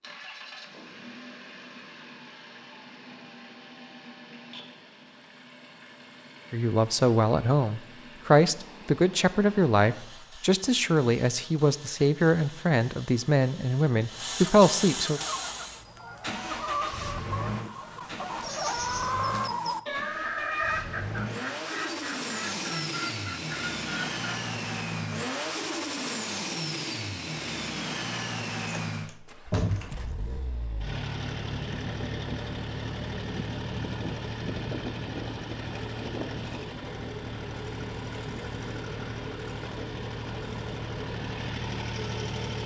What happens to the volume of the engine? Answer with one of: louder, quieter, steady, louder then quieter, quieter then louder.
louder.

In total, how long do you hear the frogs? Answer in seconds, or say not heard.
not heard.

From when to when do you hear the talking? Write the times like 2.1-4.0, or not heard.
6.5-15.2.